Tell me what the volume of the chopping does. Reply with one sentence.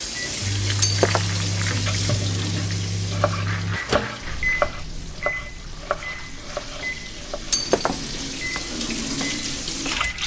The loudness of the chopping goes up, then down.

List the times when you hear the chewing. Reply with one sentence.
You can't hear the chewing here.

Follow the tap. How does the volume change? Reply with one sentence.
The volume of the tap goes down, then up.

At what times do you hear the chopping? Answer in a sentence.
The chopping can be heard from 1.9 to 10.1 s.